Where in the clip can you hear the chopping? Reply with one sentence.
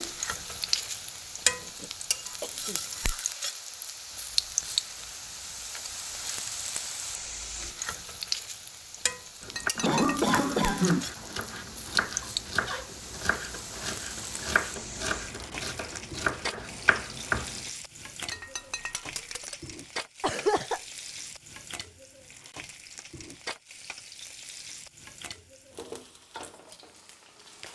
You can hear the chopping from 9.4 to 17.7 s.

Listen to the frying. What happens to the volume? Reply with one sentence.
The loudness of the frying goes down.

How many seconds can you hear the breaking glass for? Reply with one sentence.
The breaking glass can be heard for 2 seconds in total.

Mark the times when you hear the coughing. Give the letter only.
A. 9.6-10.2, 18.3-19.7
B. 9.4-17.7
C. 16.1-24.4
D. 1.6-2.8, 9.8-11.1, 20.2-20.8
D.